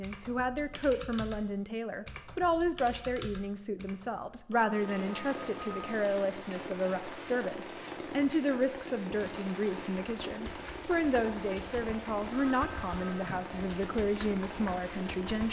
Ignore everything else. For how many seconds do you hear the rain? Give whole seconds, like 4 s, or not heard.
11 s.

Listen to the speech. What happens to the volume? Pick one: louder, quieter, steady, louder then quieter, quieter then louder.
steady.